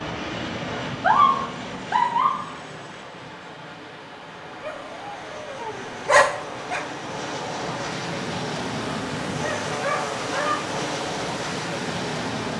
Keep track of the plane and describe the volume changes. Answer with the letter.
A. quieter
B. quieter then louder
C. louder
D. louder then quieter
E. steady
B.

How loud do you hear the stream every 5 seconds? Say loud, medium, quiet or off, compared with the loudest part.
medium, loud, loud.